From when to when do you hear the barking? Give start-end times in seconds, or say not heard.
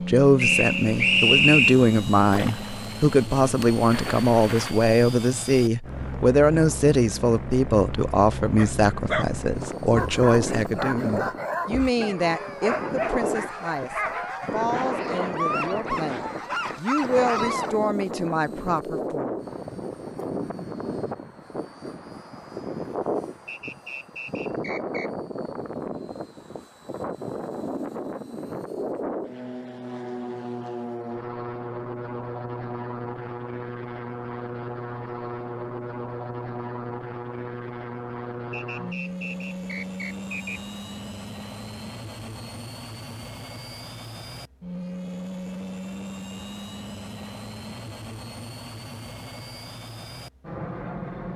8.6-17.8.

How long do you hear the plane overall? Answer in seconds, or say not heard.
51 s.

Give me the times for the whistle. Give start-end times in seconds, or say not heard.
0.3-1.8, 23.4-25.1, 38.5-40.6.